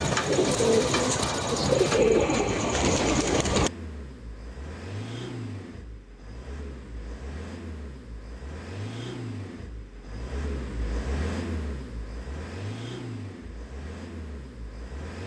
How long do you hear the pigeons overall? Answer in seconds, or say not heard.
4 s.